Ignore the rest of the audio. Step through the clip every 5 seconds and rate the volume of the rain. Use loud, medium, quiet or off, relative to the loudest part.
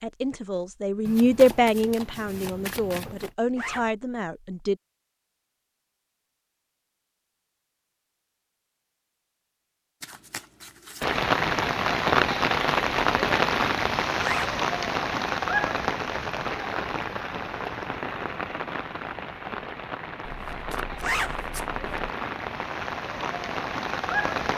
off, off, loud, medium, medium.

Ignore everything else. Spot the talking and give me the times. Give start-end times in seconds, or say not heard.
0.0-4.8.